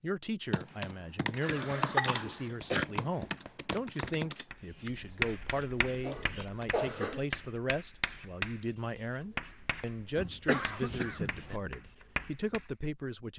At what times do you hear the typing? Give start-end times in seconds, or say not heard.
0.5-7.2.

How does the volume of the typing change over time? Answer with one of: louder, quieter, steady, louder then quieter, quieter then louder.
quieter.